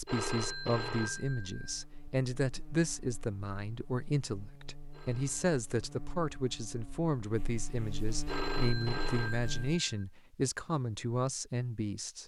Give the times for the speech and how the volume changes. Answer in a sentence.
You can hear the speech from 0.0 to 12.2 s, at a steady volume.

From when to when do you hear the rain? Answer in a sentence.
You can't hear the rain here.